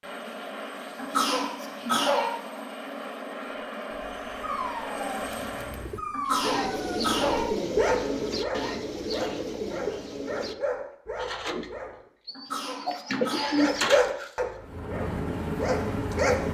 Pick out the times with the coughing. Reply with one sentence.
The coughing can be heard from 0.9 to 2.3 s, from 6.1 to 7.5 s and from 12.3 to 13.6 s.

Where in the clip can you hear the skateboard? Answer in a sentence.
The skateboard can't be heard in this clip.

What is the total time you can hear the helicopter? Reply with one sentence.
You can hear the helicopter for 8 seconds altogether.